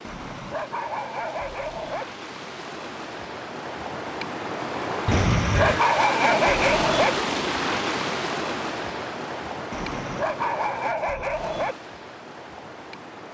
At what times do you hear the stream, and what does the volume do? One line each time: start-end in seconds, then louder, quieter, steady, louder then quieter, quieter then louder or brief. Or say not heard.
0.0-13.2 louder then quieter.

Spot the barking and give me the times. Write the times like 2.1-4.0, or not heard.
0.1-2.0, 5.1-7.1, 9.7-11.8.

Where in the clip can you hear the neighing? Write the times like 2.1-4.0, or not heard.
5.0-5.8.